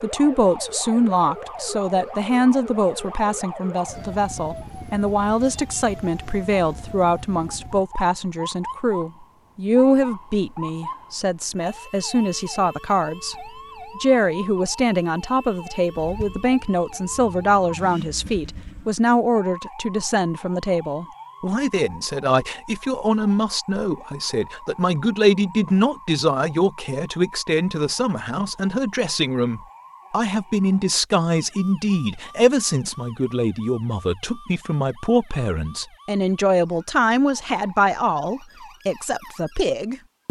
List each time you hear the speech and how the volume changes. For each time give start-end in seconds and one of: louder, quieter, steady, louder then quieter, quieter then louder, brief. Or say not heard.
0.0-40.2 steady.